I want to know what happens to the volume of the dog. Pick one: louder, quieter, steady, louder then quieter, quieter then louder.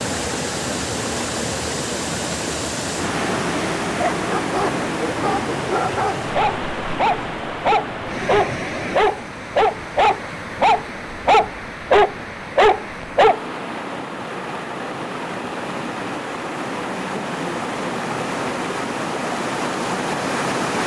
louder.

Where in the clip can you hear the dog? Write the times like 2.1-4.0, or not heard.
4.0-13.4.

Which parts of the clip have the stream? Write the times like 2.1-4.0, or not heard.
0.0-20.8.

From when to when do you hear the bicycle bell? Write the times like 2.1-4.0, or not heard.
not heard.